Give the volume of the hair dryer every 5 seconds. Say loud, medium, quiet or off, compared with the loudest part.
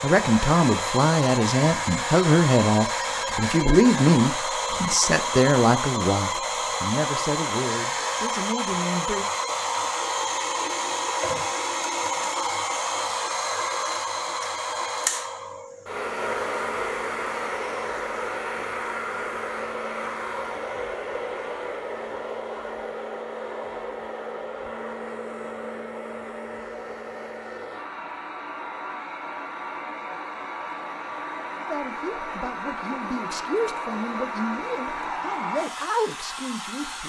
loud, loud, loud, loud, medium, medium, medium, medium.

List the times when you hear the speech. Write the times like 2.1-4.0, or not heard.
0.0-9.2, 31.6-37.0.